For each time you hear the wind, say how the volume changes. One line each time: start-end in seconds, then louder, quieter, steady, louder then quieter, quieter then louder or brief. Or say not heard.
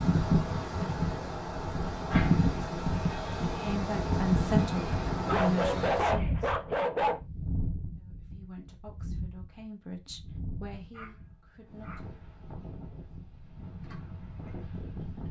0.0-15.2 quieter.